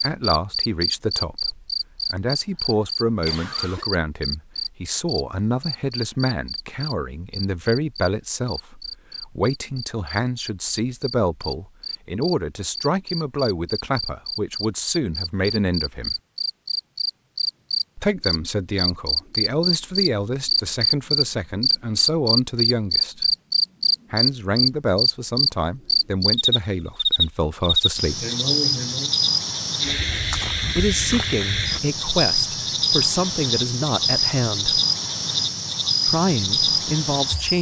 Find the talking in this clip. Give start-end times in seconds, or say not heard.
0.0-16.1, 17.9-23.3, 24.1-28.2, 30.8-34.8, 36.0-37.5.